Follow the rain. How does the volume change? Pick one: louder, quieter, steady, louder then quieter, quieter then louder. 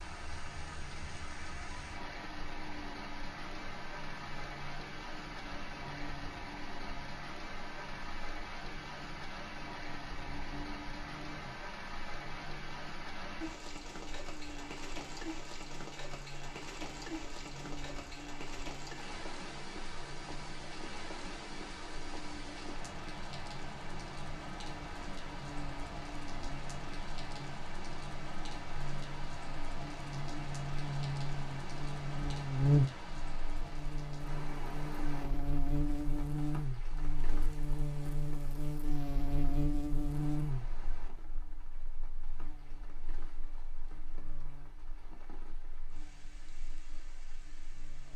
quieter.